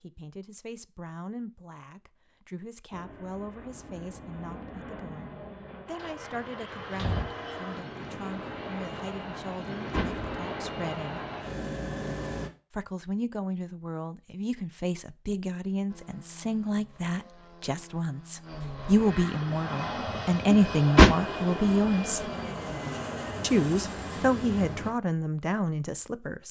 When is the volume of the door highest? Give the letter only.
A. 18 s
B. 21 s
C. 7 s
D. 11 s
B.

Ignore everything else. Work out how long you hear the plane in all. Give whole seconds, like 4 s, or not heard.
19 s.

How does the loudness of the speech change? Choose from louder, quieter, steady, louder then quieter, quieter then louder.
louder.